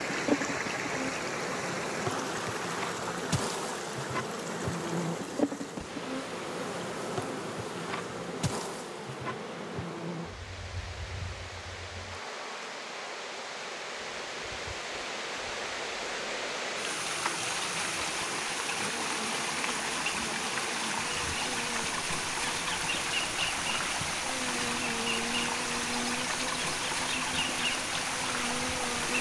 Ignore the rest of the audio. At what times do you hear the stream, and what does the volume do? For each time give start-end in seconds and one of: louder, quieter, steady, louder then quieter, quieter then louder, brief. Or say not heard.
0.0-29.1 quieter then louder.